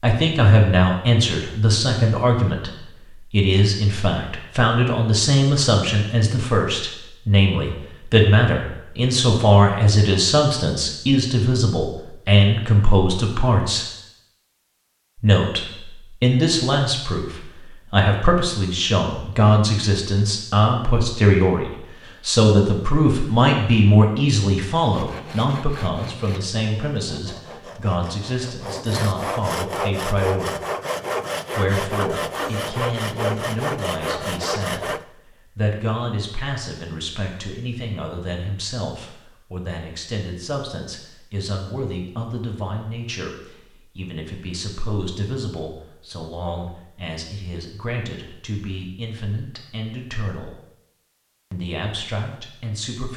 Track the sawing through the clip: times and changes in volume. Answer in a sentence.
The sawing can be heard from 24.9 to 35.0 s, getting louder.